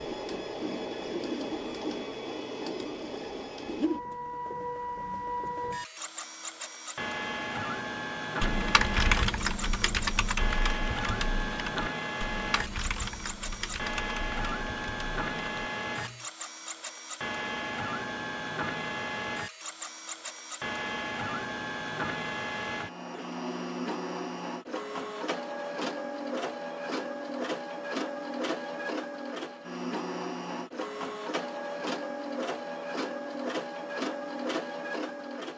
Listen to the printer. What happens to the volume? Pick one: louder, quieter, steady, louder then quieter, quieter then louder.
steady.